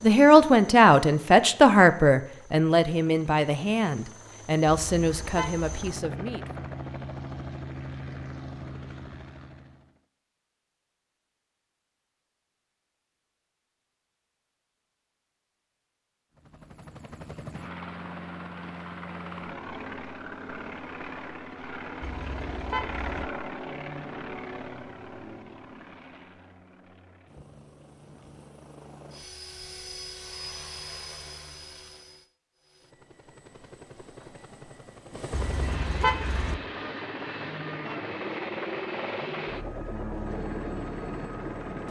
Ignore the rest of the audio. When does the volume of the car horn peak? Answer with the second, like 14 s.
36 s.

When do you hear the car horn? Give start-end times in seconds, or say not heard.
4.7-5.9, 22.0-23.2, 35.3-36.5.